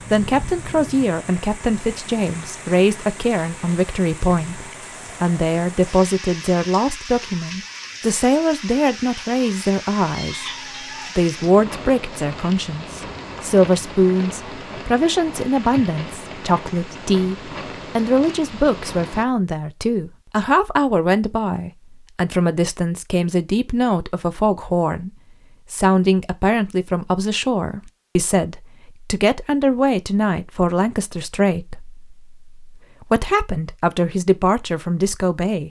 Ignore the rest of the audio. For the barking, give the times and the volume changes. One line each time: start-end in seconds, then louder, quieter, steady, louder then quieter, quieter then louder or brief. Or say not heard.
not heard.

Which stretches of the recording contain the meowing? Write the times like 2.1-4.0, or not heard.
10.1-11.2.